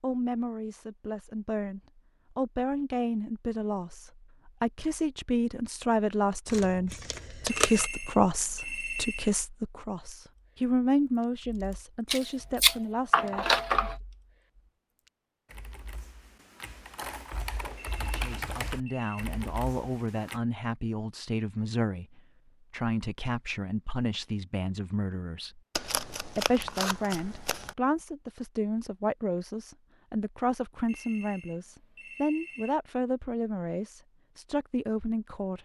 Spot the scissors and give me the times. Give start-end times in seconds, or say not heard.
6.5-7.9, 12.1-13.9, 25.8-27.7.